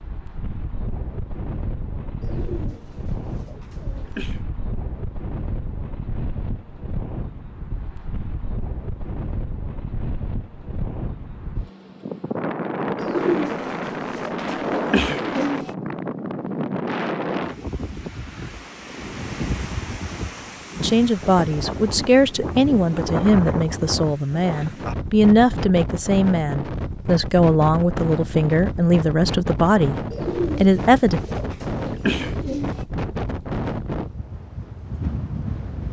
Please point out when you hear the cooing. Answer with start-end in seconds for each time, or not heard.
2.2-4.4, 12.9-15.7, 30.1-32.9.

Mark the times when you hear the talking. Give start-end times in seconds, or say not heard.
20.8-29.9, 30.6-31.2.